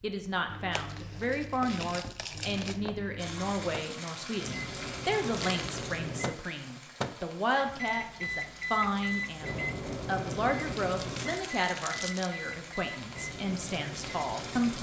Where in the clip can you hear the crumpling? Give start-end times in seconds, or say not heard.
0.7-3.0, 5.3-5.8, 10.8-12.3.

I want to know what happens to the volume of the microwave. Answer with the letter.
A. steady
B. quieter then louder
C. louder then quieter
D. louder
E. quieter
C.